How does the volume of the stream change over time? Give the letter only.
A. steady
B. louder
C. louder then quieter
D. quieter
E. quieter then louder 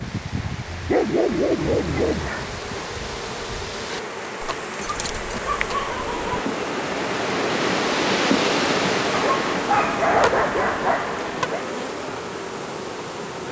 C.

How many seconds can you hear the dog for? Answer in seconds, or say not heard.
6 s.